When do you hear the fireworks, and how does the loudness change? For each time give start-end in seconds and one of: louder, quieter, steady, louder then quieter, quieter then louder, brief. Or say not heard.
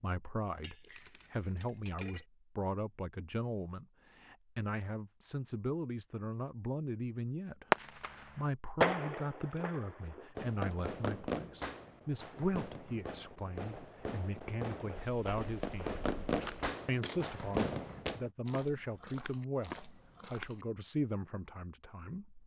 7.7-18.2 quieter then louder.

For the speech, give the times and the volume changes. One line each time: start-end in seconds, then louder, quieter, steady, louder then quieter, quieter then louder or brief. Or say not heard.
0.0-16.0 steady
16.9-22.4 louder then quieter.